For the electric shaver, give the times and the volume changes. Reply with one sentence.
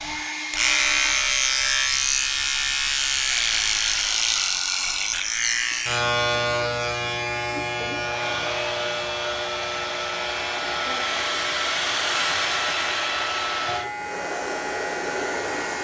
The electric shaver can be heard from 0.0 to 15.7 s, getting quieter.